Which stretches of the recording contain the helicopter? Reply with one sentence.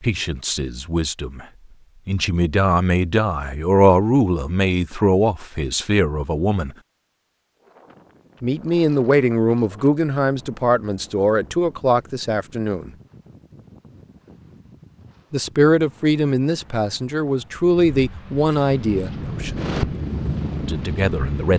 The helicopter can be heard from 18.9 to 21.5 s.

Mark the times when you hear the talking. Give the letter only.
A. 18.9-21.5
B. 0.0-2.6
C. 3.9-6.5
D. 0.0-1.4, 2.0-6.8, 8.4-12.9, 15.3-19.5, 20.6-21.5
D.